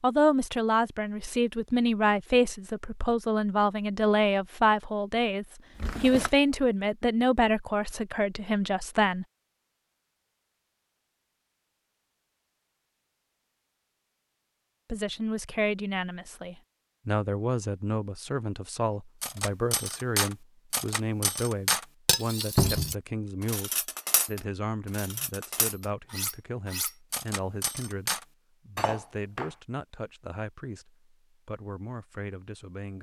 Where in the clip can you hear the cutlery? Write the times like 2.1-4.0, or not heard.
19.2-29.5.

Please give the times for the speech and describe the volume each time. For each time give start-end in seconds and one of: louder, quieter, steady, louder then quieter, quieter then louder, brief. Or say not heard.
0.0-9.2 steady
14.9-32.9 quieter.